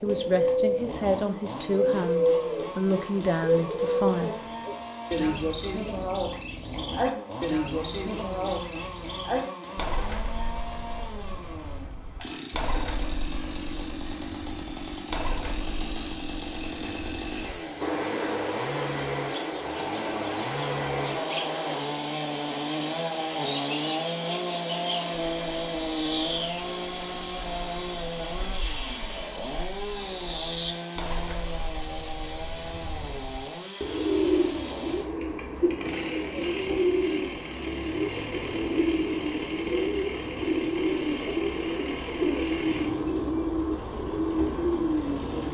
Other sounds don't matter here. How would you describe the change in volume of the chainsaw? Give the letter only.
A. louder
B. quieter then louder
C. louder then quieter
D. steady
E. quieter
C.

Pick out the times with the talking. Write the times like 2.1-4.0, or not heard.
0.0-4.3.